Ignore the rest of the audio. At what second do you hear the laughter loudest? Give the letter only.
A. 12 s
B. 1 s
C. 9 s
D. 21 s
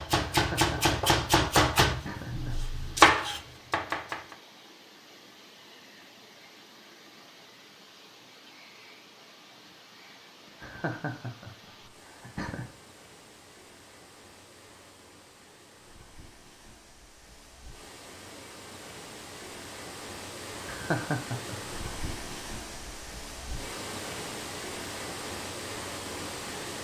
D.